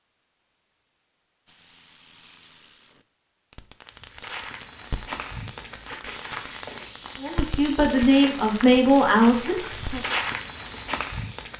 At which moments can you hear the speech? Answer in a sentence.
The speech can be heard from 7.2 to 10.0 s.